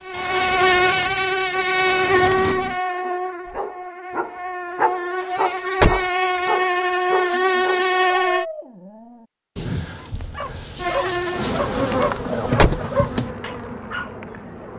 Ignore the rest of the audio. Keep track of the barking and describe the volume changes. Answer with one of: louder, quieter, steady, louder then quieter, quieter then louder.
quieter then louder.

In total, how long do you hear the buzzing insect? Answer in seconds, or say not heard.
12 s.